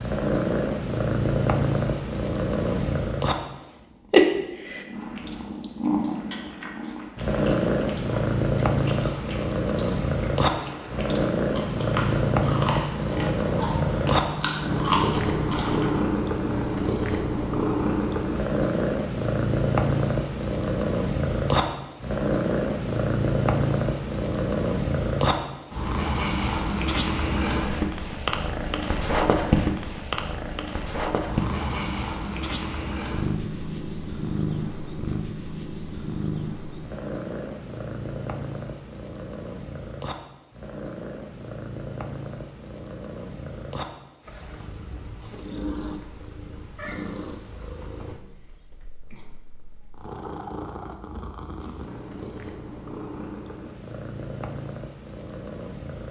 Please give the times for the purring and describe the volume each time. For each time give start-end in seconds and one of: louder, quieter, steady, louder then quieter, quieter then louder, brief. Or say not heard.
0.0-56.0 quieter.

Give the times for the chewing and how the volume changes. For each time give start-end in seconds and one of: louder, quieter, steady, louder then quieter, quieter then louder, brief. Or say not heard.
4.9-16.0 louder.